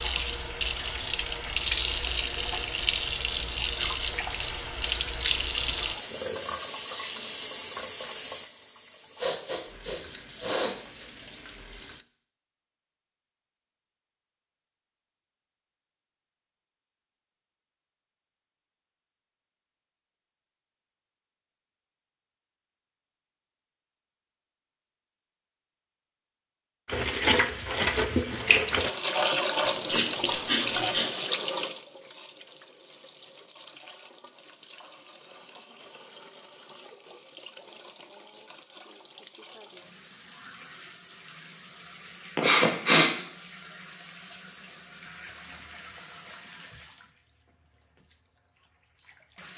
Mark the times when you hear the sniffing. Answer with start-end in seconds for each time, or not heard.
9.2-11.1, 29.6-31.1, 42.4-43.1.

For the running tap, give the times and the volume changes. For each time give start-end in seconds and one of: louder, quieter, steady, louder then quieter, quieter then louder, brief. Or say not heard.
0.0-12.1 quieter
26.9-49.5 quieter.